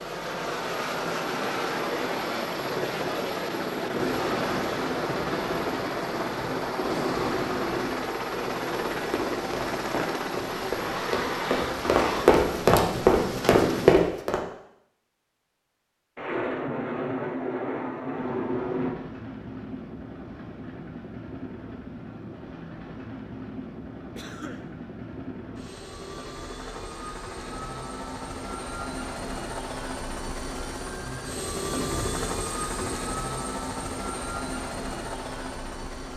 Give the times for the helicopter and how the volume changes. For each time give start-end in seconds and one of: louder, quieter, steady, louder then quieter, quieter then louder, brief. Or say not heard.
0.0-13.9 steady
18.1-36.1 louder.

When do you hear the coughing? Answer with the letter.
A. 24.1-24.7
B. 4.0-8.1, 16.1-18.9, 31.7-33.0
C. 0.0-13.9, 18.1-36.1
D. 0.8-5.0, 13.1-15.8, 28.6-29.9
A.